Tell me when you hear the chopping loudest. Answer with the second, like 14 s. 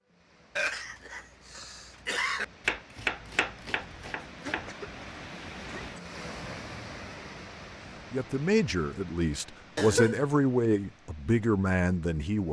3 s.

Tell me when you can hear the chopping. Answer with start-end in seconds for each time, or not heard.
2.6-4.7.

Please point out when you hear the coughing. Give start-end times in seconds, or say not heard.
0.6-2.5, 4.4-6.2, 9.8-10.3.